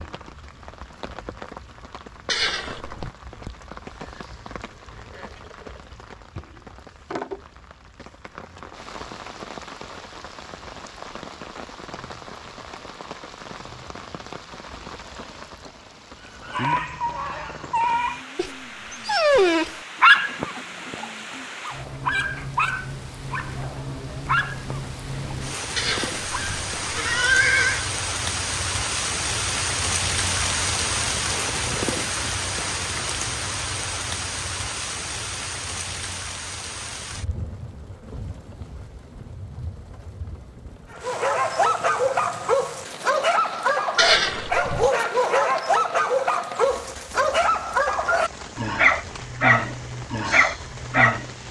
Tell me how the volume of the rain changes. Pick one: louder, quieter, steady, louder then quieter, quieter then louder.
louder then quieter.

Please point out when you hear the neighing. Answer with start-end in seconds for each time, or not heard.
2.2-3.1, 25.8-27.9, 44.0-44.9.